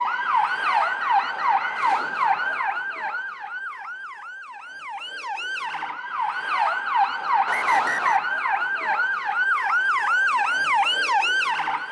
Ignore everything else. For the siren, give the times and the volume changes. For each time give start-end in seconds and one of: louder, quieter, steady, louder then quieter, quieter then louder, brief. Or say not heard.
0.0-11.8 quieter then louder.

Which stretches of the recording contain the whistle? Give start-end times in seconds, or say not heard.
0.6-2.6, 7.5-8.3.